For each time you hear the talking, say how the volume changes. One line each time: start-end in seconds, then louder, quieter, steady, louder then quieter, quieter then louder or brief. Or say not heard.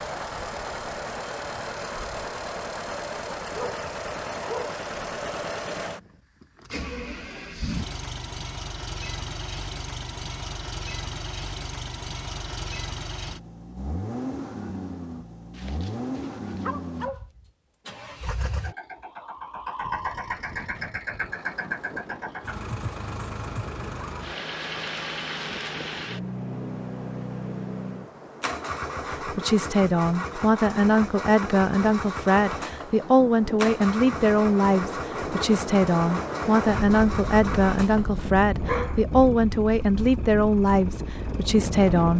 29.2-42.1 steady.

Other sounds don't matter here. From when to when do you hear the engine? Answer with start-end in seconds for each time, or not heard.
0.0-42.1.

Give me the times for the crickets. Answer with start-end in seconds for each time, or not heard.
not heard.